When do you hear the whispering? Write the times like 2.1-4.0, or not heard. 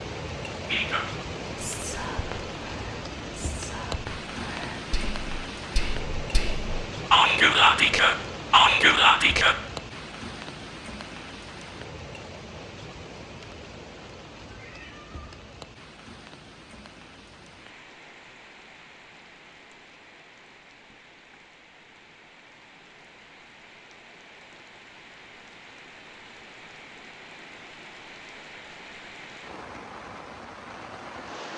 0.7-9.6.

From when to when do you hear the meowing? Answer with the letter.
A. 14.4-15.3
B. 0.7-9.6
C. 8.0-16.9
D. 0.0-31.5
A.